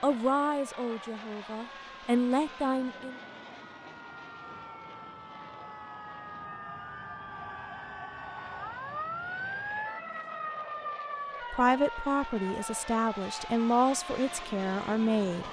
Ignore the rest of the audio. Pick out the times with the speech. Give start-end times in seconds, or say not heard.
0.0-3.1, 11.5-15.4.